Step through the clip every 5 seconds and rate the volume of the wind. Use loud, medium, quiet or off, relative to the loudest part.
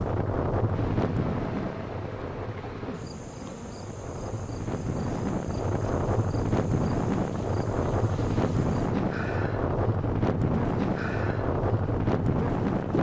medium, loud, loud.